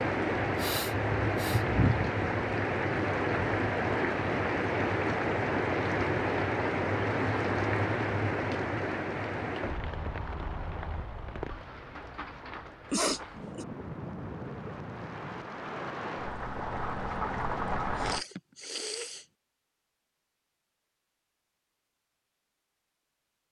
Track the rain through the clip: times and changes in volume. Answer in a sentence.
You can hear the rain from 0.0 to 18.2 s, getting quieter then louder.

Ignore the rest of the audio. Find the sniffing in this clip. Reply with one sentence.
The sniffing can be heard from 0.6 to 1.6 s, from 12.9 to 13.7 s and from 17.9 to 19.2 s.